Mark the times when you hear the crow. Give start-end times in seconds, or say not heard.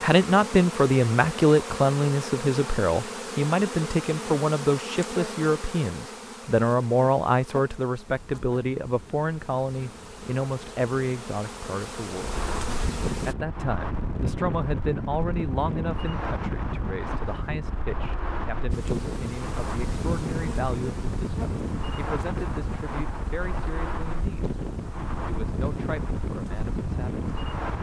not heard.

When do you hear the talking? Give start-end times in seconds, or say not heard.
0.0-12.4, 13.2-24.5, 25.4-27.2.